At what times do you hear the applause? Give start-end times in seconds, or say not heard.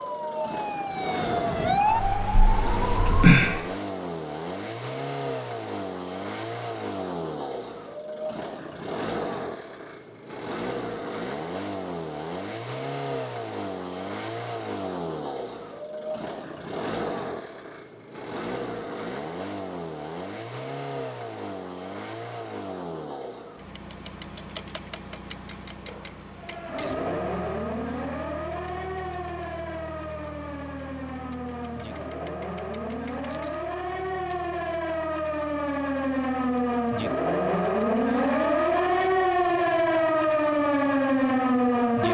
not heard.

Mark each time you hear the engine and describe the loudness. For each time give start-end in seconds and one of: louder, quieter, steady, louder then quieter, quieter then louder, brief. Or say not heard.
0.0-42.0 quieter.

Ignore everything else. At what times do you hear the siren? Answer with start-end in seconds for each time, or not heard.
0.0-3.8, 26.4-42.0.